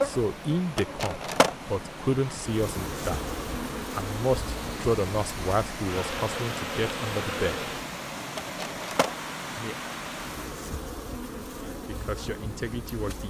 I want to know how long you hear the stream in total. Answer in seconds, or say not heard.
11 s.